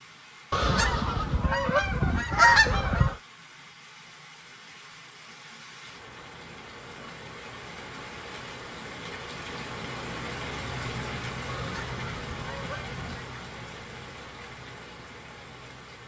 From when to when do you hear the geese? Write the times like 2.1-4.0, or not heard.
0.5-3.1, 11.4-13.3.